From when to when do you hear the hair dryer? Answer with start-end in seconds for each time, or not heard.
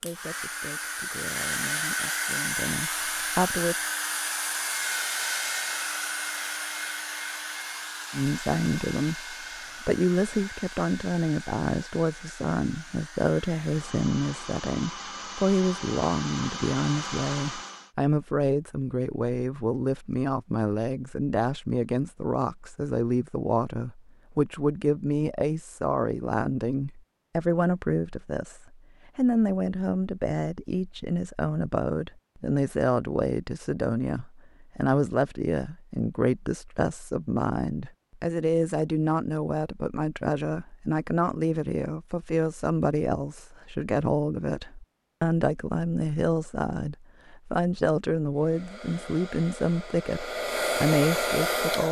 0.0-17.9, 48.4-51.8.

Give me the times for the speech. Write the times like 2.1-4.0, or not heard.
0.0-3.9, 8.1-51.8.